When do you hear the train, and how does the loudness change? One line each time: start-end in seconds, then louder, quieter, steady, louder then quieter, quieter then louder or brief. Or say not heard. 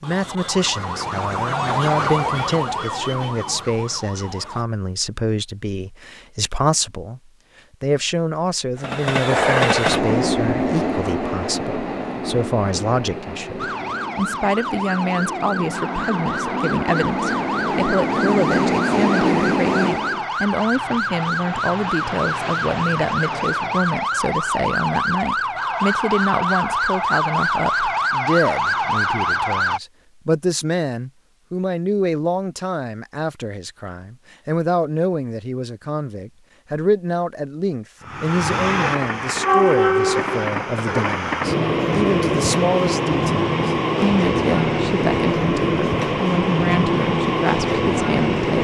8.8-20.2 quieter then louder
38.0-48.5 steady.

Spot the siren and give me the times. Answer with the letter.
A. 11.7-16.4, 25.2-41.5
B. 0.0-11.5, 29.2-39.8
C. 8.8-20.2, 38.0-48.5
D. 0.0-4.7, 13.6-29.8
D.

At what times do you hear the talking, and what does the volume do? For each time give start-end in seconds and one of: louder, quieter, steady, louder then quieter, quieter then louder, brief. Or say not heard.
0.0-7.2 steady
7.8-48.5 steady.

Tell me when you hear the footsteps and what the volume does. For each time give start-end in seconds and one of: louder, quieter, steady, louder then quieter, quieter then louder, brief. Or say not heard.
not heard.